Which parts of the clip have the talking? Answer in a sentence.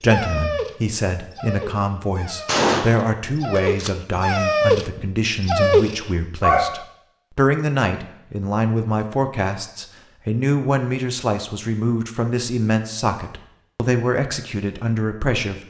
You can hear the talking from 0.0 to 15.6 s.